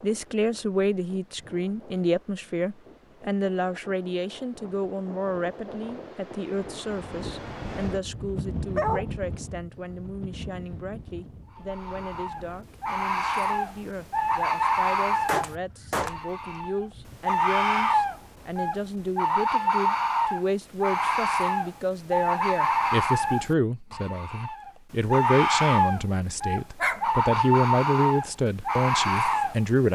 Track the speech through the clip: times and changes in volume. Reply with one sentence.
You can hear the speech from 0.0 to 29.9 s, getting quieter then louder.